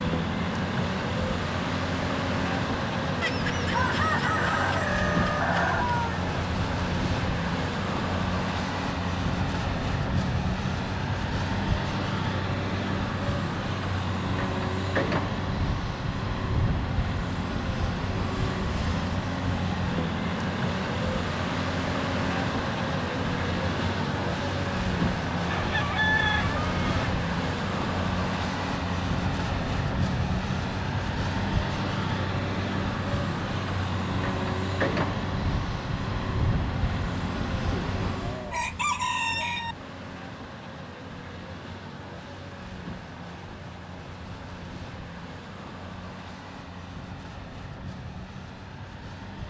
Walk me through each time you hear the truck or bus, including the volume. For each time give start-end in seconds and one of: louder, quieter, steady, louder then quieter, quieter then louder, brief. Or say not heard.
0.0-49.4 quieter.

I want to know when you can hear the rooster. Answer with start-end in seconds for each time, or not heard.
3.2-6.2, 25.4-27.2, 37.7-39.8.